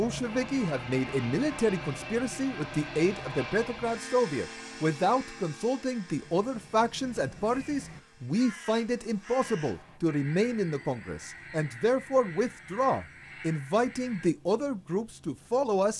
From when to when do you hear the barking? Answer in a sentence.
The barking can't be heard in this clip.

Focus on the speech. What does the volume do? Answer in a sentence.
The loudness of the speech stays about the same.